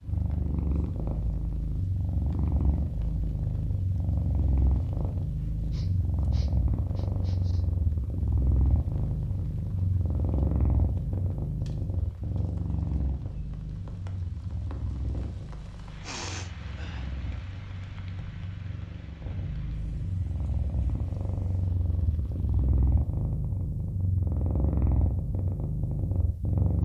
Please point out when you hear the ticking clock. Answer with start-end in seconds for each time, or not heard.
not heard.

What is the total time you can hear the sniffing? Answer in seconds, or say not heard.
4 s.